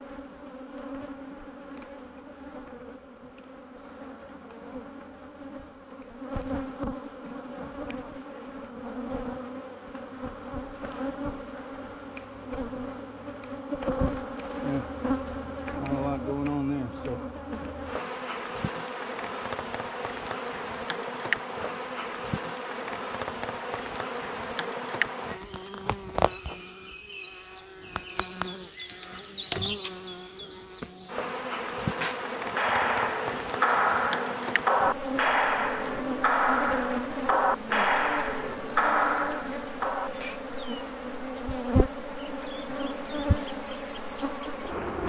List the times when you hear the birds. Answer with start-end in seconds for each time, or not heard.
not heard.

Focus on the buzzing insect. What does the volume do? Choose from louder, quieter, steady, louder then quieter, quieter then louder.
louder.